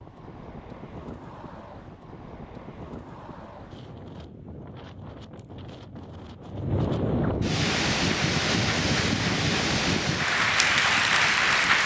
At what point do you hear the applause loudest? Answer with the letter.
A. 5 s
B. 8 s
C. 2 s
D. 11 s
D.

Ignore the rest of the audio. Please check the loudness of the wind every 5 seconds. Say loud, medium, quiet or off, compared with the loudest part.
quiet, loud, medium.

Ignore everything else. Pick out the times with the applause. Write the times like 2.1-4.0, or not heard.
7.6-11.8.